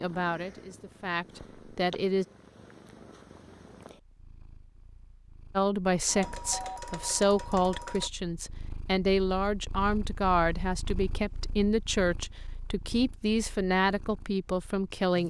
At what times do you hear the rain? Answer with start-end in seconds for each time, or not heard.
not heard.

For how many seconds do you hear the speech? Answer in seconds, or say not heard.
12 s.